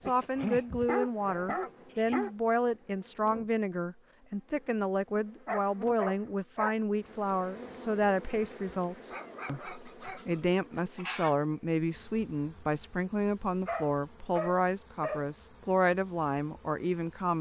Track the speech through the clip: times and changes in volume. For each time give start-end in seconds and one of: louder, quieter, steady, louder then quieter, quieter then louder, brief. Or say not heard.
0.1-17.3 steady.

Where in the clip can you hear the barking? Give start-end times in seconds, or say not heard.
0.0-2.4, 5.5-6.8, 9.1-11.3, 13.7-15.2.